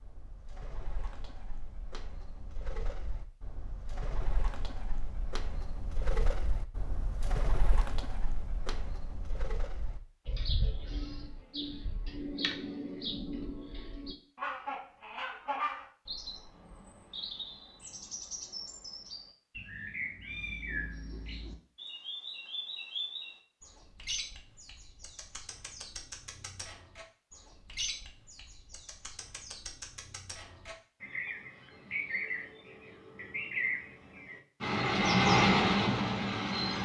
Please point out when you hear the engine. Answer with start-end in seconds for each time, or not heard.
34.6-36.8.